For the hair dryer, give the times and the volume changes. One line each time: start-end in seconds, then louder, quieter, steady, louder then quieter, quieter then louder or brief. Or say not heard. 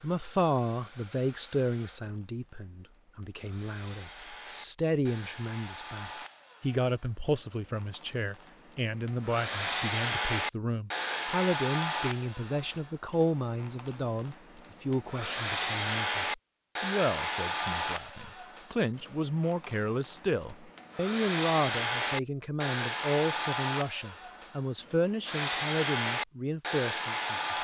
0.0-27.5 louder.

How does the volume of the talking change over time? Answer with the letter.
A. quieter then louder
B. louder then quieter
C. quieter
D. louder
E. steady
E.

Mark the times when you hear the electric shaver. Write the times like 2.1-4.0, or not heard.
not heard.